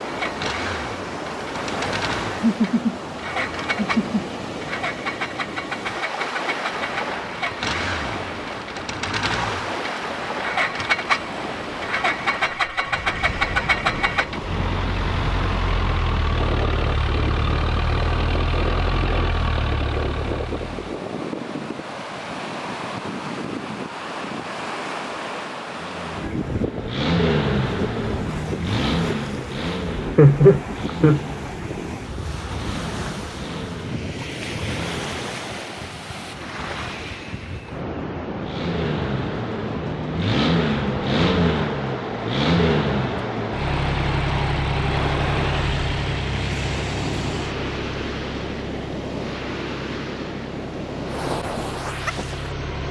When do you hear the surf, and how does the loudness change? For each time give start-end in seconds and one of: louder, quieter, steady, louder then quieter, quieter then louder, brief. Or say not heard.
0.0-52.8 steady.